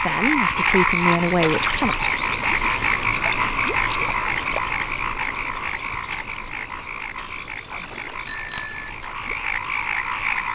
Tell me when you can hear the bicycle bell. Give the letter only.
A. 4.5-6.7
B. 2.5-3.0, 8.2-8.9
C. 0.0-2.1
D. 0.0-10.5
B.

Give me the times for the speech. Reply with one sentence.
The speech can be heard from 0.0 to 2.1 s.